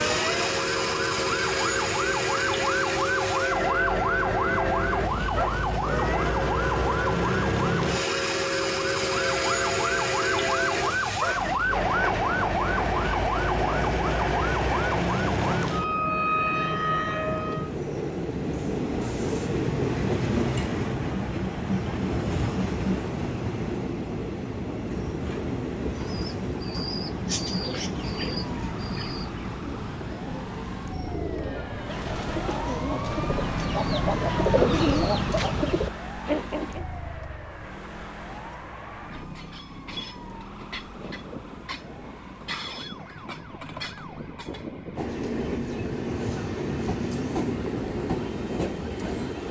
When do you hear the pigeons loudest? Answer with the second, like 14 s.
35 s.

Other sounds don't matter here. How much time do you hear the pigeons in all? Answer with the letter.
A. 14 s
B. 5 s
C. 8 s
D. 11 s
D.